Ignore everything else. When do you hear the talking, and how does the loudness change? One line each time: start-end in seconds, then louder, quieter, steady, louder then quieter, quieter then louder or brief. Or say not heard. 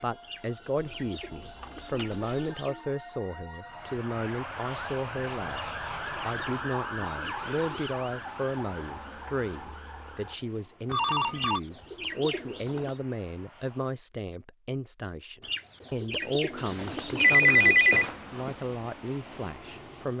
0.0-20.1 steady.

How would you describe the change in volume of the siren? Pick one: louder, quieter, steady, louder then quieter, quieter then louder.
louder then quieter.